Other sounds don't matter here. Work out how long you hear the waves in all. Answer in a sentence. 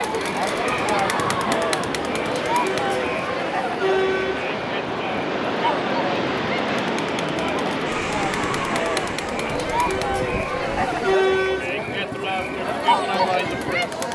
You can hear the waves for 11 seconds altogether.